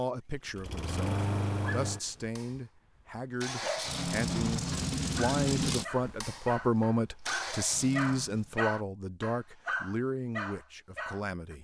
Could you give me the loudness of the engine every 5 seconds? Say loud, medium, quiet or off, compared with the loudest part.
loud, loud, off.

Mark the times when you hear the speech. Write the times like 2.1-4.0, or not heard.
0.0-11.5.